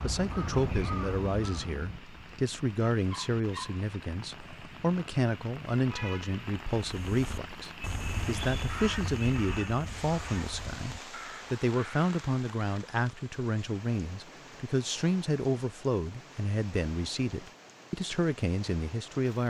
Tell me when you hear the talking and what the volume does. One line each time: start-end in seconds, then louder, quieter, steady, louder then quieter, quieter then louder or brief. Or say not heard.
0.0-19.4 steady.